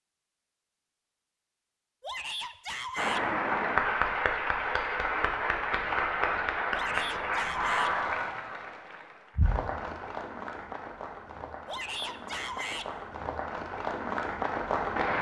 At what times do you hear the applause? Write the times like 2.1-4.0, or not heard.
3.0-15.1.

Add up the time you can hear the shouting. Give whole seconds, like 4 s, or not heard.
4 s.